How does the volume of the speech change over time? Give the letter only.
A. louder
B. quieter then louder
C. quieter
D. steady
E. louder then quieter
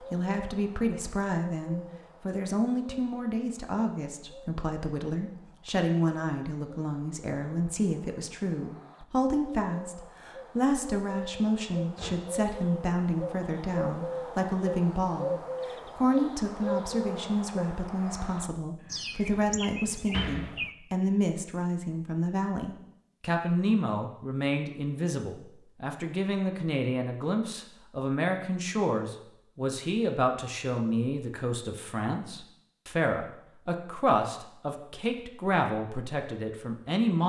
D.